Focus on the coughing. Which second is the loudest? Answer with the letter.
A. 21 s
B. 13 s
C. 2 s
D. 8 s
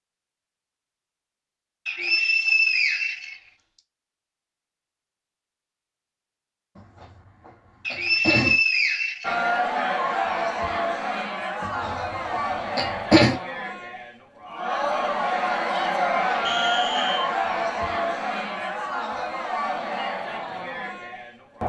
B.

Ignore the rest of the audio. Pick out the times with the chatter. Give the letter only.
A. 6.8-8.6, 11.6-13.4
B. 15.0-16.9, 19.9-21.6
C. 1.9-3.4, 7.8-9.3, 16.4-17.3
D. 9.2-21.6
D.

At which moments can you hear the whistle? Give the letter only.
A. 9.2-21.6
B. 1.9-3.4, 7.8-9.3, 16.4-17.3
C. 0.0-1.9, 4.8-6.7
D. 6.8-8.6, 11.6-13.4
B.